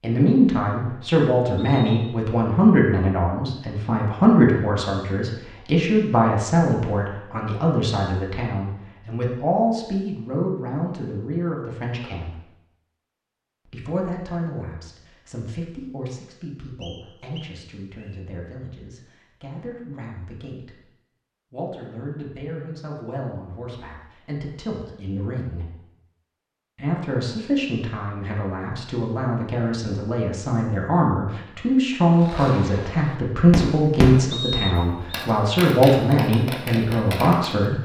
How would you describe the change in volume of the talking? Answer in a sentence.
The loudness of the talking goes down, then up.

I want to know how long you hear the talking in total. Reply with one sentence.
The talking can be heard for 35 seconds in total.